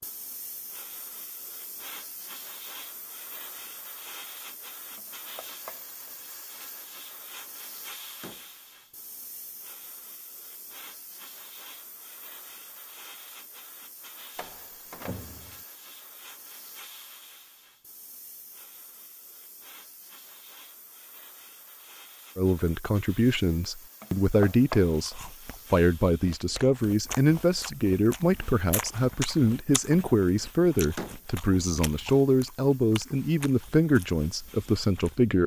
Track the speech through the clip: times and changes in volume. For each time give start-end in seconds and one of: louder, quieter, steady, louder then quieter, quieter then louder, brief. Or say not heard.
22.4-35.4 steady.